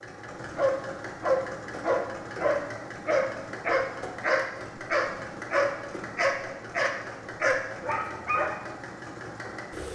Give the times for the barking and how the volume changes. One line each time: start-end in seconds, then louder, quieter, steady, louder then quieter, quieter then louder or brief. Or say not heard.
0.6-8.6 steady.